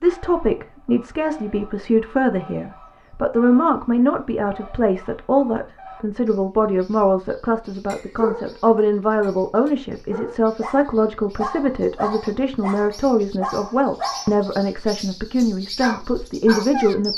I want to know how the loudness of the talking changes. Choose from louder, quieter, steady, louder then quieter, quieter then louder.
steady.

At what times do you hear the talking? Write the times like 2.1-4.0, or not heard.
0.0-17.1.